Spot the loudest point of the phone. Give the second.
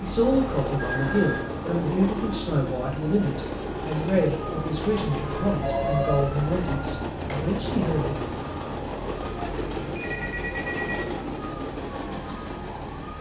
6 s.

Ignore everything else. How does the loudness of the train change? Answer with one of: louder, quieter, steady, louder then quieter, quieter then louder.
steady.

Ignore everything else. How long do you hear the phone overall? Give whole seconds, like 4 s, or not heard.
3 s.